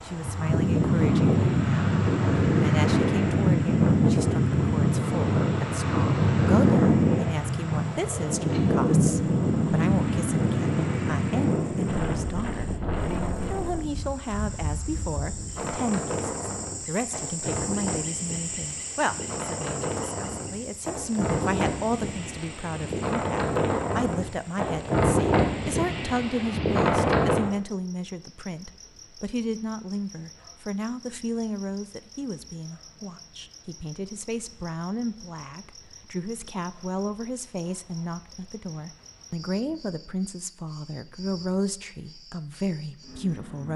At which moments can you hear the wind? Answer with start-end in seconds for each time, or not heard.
0.0-27.5.